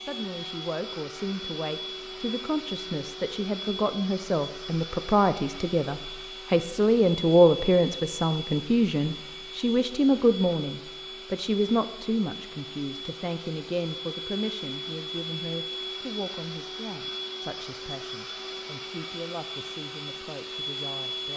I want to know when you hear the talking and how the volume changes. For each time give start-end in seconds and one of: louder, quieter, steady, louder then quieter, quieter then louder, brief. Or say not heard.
0.0-21.3 louder then quieter.